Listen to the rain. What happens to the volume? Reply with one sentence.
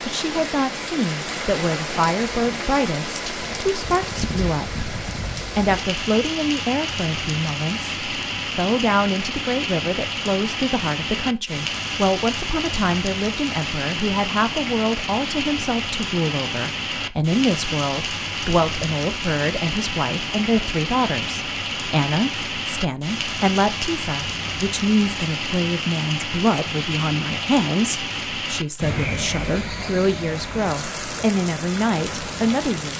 The loudness of the rain stays about the same.